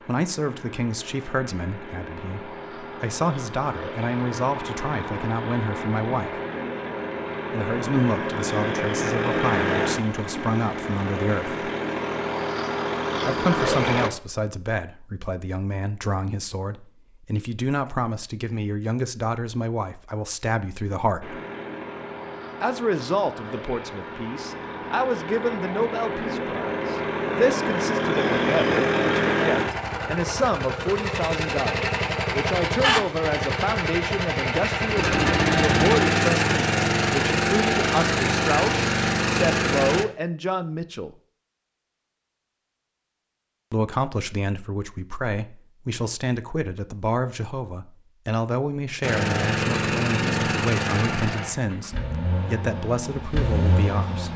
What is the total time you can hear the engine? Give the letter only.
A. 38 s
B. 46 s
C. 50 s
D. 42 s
A.